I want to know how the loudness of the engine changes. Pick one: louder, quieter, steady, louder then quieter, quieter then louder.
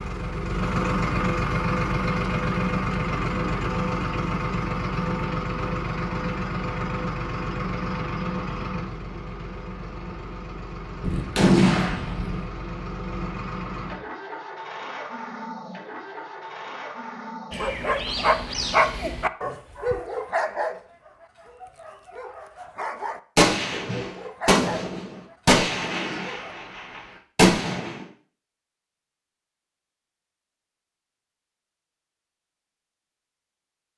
quieter.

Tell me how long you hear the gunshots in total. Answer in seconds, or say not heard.
6 s.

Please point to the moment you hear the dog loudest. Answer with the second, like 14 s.
19 s.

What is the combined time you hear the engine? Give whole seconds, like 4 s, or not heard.
19 s.